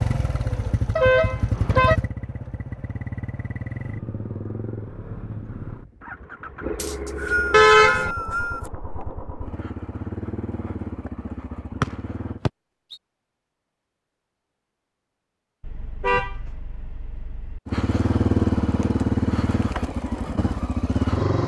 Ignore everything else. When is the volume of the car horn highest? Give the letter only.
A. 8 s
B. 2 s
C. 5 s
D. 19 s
A.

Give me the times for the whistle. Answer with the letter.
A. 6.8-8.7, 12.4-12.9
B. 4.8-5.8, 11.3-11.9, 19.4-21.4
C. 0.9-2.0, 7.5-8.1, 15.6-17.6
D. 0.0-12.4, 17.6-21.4
A.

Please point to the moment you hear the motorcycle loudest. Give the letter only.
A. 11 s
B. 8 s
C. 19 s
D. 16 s
C.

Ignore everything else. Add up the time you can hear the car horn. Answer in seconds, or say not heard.
4 s.